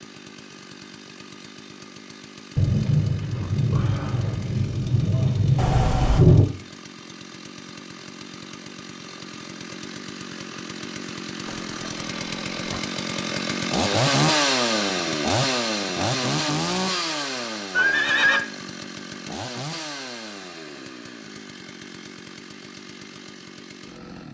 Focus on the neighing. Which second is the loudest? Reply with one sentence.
The volume of the neighing peaks at 18 seconds.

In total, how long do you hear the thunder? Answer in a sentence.
You can hear the thunder for 4 seconds altogether.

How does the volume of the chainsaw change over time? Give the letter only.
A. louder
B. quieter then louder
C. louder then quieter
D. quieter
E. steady
C.